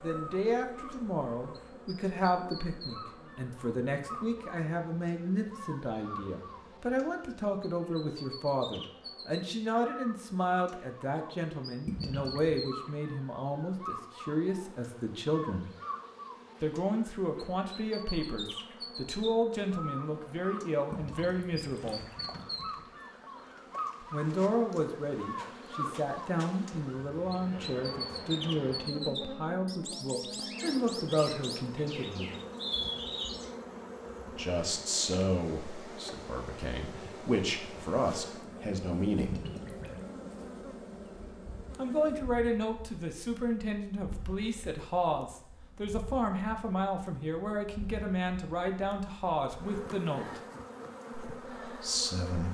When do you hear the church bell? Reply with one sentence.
The church bell can't be heard in this clip.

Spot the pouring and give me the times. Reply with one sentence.
You can hear the pouring from 11.8 to 12.7 s, from 20.9 to 22.8 s and from 39.1 to 40.0 s.